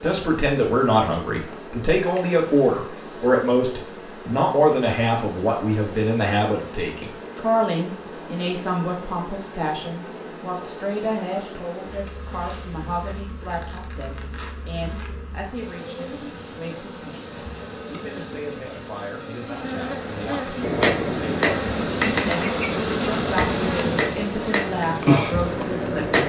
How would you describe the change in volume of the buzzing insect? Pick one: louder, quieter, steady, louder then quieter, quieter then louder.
louder.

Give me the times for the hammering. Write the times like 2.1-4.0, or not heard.
20.6-26.2.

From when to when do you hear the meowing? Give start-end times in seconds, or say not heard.
not heard.